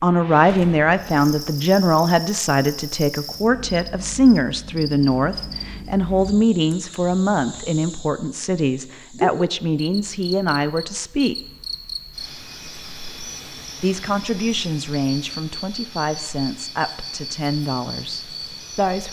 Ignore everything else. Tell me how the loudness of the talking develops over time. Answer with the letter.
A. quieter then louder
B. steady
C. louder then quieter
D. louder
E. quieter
E.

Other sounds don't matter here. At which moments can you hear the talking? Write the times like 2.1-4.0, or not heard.
0.0-11.3, 13.8-19.0.